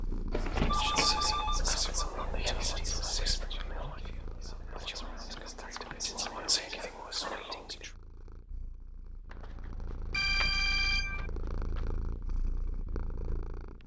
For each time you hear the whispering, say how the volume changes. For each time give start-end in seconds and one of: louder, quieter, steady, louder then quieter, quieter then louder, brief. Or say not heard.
0.4-7.9 quieter then louder.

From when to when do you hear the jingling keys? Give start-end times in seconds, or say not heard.
not heard.